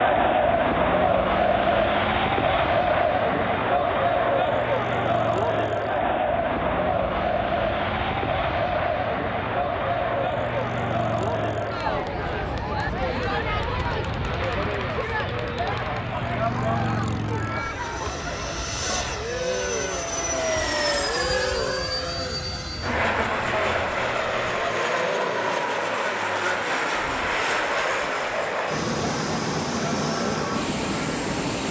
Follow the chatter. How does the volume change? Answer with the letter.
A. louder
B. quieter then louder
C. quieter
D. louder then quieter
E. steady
C.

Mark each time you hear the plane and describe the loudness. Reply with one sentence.
The plane can be heard from 0.0 to 31.6 s, getting louder.